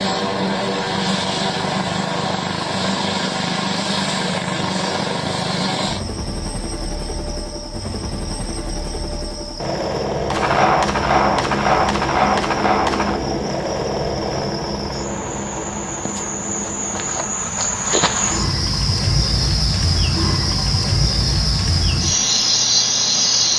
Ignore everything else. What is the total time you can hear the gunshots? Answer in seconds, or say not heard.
3 s.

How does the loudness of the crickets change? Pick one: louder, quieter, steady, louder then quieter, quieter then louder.
louder.